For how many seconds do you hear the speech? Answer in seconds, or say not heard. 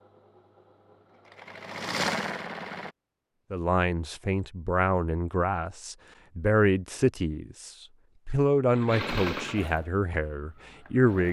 8 s.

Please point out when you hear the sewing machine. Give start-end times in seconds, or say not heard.
0.0-3.0, 8.7-11.2.